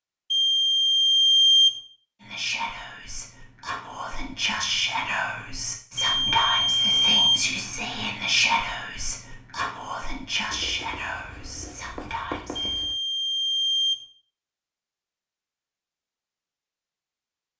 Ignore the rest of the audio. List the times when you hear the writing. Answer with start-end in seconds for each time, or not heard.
10.5-12.9.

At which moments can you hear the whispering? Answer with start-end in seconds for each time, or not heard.
2.2-12.7.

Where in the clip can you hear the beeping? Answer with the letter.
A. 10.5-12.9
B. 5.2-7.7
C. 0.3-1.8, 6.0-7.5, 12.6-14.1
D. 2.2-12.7
C.